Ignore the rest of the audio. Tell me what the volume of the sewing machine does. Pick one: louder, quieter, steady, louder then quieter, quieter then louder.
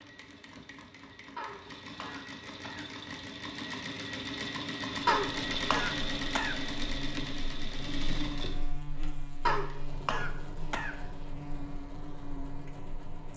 louder then quieter.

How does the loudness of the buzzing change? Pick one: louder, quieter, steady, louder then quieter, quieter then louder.
steady.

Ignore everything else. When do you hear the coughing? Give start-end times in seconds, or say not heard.
1.4-2.9, 5.0-6.5, 9.4-10.9.